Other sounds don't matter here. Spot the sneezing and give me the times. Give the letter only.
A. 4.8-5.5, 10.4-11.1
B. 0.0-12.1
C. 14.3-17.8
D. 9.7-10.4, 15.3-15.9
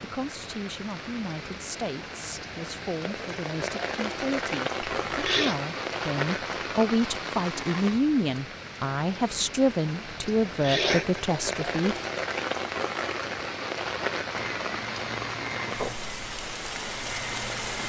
A.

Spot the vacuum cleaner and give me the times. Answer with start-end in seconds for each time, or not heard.
14.3-17.8.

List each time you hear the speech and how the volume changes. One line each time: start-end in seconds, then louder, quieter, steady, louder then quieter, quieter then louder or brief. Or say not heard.
0.0-12.1 louder.